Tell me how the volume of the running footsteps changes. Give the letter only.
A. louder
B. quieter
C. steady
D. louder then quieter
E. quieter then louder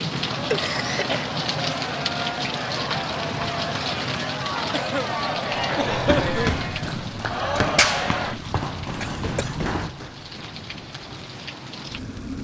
B.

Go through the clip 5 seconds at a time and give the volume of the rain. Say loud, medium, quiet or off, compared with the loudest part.
loud, medium, medium.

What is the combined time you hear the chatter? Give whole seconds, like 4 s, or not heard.
8 s.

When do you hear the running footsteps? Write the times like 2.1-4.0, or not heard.
5.5-11.3.